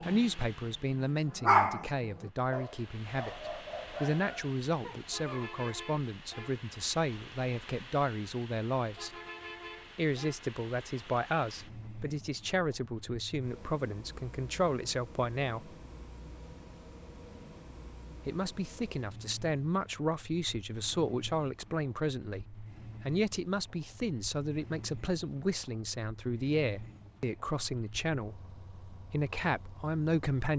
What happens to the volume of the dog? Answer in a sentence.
The loudness of the dog goes up, then down.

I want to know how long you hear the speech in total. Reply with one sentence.
You can hear the speech for 27 seconds altogether.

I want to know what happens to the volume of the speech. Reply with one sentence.
The volume of the speech stays about the same.